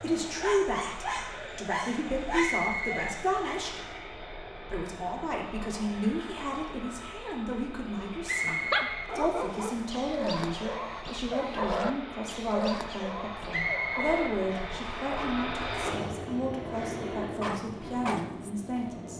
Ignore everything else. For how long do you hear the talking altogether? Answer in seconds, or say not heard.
19 s.